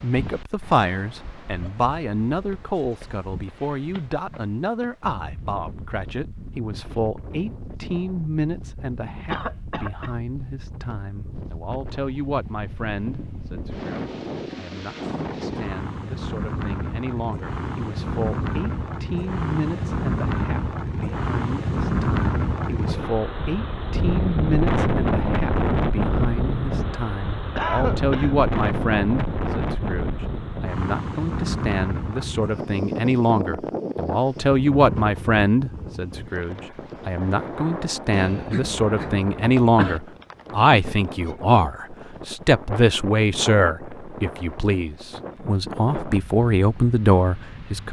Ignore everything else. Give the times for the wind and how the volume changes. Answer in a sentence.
You can hear the wind from 0.0 to 47.8 s, getting louder then quieter.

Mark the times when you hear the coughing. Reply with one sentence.
You can hear the coughing from 9.3 to 10.2 s, from 27.6 to 28.4 s and from 38.1 to 40.0 s.